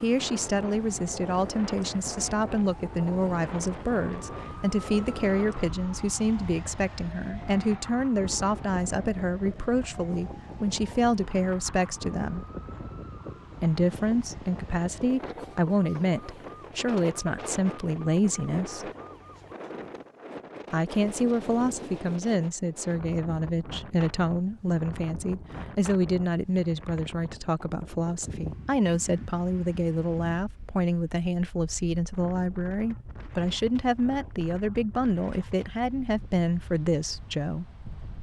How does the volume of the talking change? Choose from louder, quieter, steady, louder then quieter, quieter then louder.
steady.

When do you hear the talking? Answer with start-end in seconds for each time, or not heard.
0.0-12.4, 13.6-18.9, 20.7-37.6.